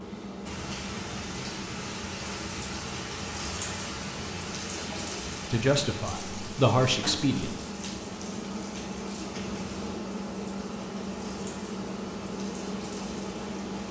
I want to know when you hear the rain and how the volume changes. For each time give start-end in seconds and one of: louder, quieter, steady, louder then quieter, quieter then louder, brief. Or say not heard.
0.0-13.8 quieter.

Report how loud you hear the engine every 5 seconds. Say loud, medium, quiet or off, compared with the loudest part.
medium, loud, loud.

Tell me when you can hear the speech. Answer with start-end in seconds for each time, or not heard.
5.5-7.5.